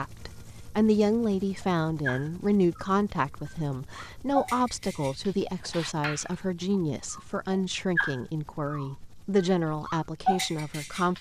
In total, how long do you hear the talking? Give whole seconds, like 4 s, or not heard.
11 s.